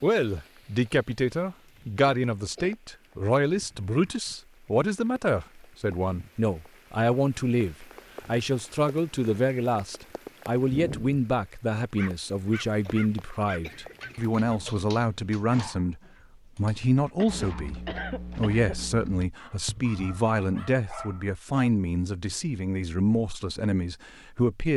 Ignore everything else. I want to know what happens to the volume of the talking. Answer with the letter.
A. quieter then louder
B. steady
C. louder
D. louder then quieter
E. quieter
B.